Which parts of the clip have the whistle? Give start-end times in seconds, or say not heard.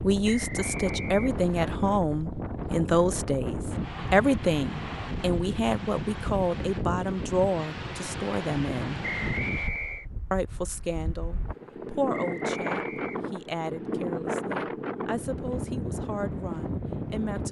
0.2-1.8, 9.0-10.1, 12.1-13.3.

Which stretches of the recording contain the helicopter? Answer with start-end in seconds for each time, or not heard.
not heard.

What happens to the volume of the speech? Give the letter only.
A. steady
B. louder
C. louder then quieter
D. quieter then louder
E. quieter
E.